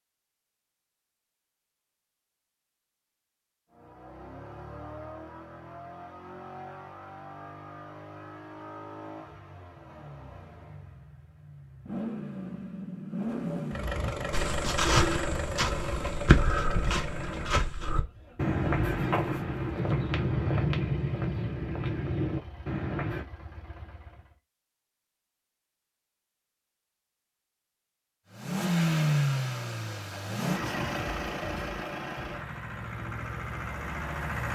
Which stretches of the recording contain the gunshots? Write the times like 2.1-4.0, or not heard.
not heard.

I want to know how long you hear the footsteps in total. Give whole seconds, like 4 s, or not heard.
9 s.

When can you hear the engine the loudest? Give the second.
29 s.